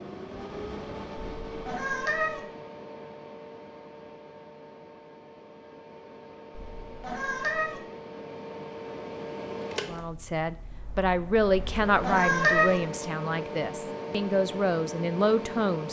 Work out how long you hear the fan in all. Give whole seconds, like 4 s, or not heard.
16 s.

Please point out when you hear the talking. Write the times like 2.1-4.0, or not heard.
9.8-15.8.